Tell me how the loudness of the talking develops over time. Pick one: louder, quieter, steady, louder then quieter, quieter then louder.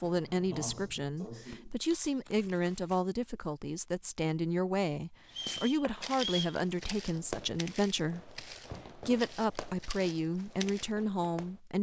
steady.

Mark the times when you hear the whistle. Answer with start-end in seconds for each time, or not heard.
5.2-6.6.